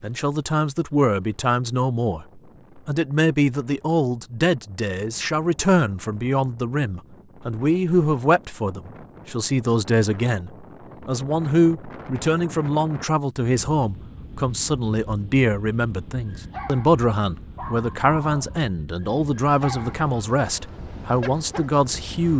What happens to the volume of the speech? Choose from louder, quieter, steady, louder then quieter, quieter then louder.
steady.